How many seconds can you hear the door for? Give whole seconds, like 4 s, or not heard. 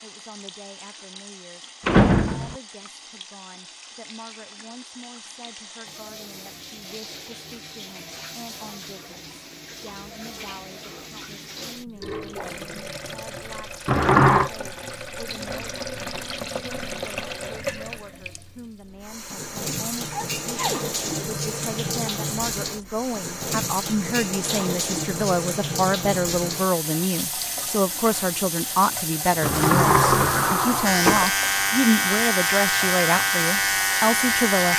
3 s.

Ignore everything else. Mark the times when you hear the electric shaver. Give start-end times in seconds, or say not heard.
30.8-34.7.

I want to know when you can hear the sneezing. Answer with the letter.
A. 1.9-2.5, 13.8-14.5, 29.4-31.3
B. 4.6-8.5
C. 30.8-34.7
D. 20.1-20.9
D.